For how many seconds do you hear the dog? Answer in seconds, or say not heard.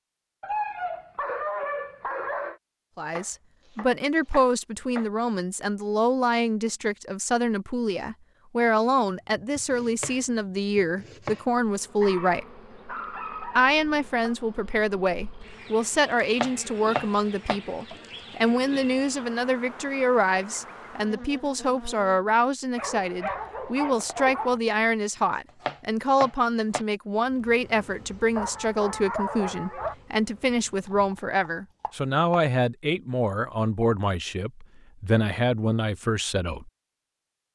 8 s.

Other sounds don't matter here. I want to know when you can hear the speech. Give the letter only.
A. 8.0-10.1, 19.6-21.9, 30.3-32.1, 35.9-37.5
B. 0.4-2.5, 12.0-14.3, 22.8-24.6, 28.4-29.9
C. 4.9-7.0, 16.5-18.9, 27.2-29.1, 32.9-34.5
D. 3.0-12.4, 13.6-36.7
D.